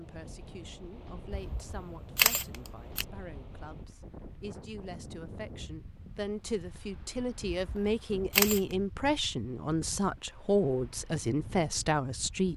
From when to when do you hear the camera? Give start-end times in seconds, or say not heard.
1.3-3.0, 7.5-8.8.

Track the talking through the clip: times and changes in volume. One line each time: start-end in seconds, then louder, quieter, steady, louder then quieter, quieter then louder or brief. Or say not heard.
0.0-12.5 louder.